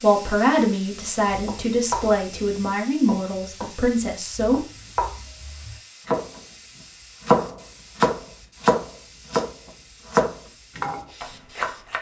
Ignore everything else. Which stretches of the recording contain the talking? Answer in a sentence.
The talking can be heard from 0.0 to 4.6 s.